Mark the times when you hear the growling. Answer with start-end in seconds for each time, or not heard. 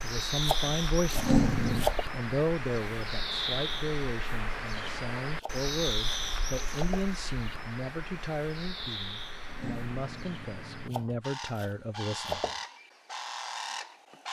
1.1-1.9, 9.4-11.1.